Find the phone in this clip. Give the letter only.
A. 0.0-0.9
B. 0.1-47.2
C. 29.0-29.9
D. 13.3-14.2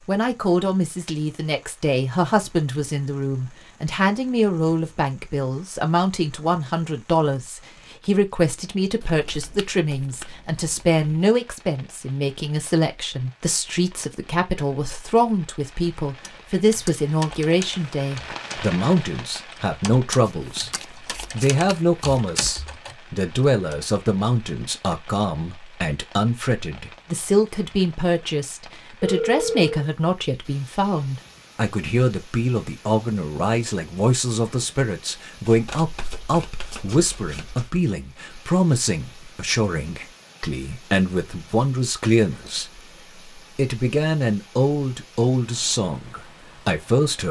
C.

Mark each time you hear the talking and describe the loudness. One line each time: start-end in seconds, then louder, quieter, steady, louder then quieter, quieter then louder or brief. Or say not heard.
0.1-47.2 steady.